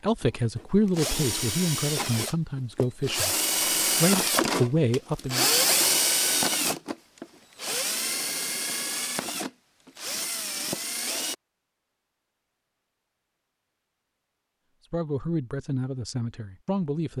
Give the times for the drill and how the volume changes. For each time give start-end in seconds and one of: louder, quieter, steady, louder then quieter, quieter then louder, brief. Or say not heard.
0.2-11.3 louder then quieter.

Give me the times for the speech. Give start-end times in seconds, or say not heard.
0.0-3.4, 4.0-5.5, 14.9-17.1.